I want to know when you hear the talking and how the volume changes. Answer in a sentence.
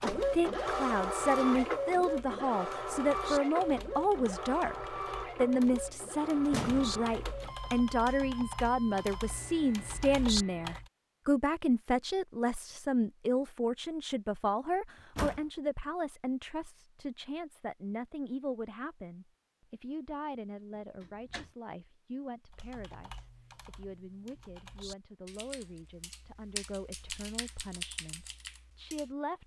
The talking can be heard from 0.0 to 29.4 s, getting quieter.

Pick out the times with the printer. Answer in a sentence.
You can hear the printer from 0.0 to 10.8 s.